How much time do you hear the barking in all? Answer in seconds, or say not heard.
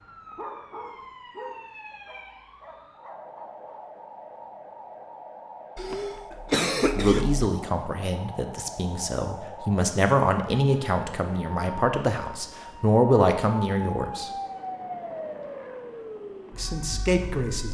4 s.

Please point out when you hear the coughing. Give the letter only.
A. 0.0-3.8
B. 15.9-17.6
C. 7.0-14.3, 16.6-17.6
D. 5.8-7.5
D.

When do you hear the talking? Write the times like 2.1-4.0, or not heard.
7.0-14.3, 16.6-17.6.